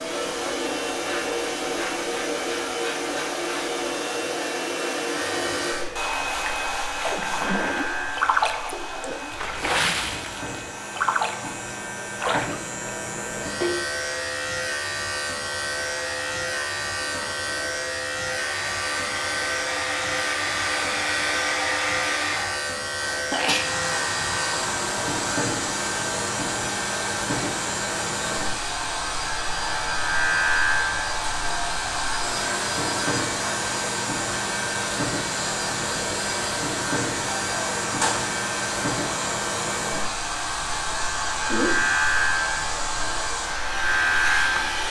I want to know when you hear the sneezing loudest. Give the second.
23 s.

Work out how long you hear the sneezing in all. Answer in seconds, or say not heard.
2 s.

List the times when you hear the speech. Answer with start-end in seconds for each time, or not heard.
not heard.